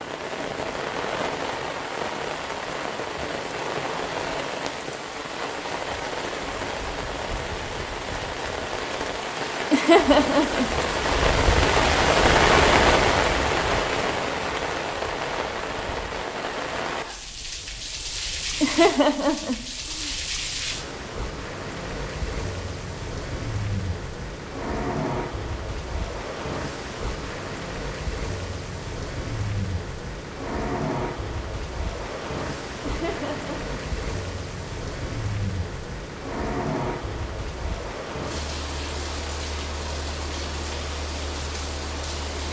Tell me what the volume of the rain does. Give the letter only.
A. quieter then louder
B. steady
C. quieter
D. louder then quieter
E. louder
D.